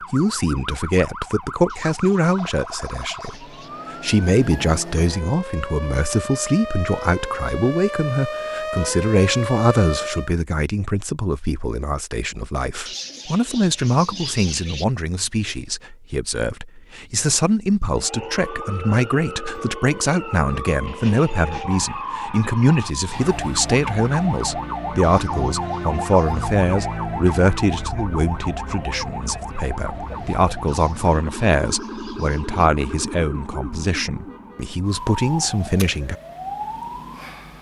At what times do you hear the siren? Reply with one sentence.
The siren can be heard from 0.0 to 10.3 s and from 17.9 to 37.5 s.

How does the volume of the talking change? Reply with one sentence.
The loudness of the talking stays about the same.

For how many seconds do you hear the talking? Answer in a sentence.
You can hear the talking for 36 seconds altogether.